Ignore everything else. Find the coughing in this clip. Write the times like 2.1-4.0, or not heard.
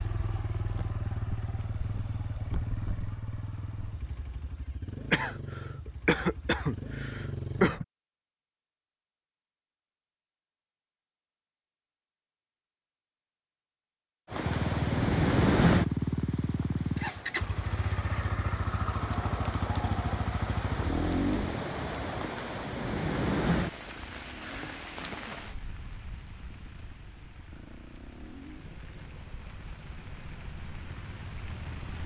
5.1-7.8.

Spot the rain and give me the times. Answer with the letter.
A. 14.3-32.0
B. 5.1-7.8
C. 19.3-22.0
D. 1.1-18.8
A.